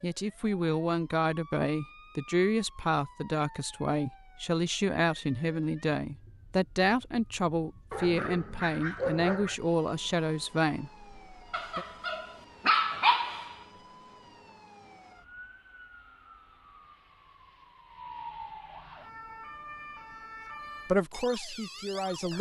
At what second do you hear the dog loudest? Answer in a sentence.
The loudest moment of the dog is at 13 seconds.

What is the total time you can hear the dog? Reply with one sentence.
You can hear the dog for 4 seconds altogether.